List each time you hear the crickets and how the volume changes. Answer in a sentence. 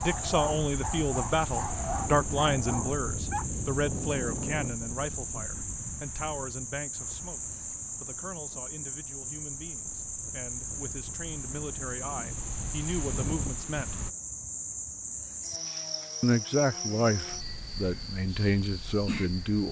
The crickets can be heard from 0.0 to 19.6 s, at a steady volume.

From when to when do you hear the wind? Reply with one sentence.
You can hear the wind from 0.0 to 14.2 s.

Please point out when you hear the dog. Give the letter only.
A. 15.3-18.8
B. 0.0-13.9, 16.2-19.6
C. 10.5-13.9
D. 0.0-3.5
D.